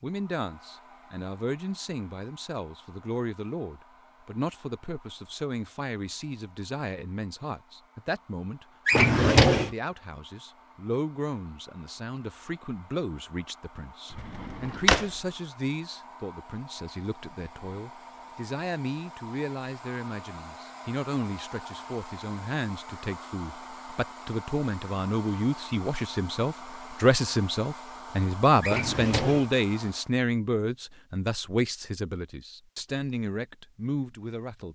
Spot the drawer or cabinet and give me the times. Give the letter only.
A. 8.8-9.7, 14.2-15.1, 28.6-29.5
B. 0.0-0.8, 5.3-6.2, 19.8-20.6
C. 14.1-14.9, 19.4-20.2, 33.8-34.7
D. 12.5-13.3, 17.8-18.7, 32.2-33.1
A.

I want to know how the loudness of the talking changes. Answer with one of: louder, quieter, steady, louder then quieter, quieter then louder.
louder.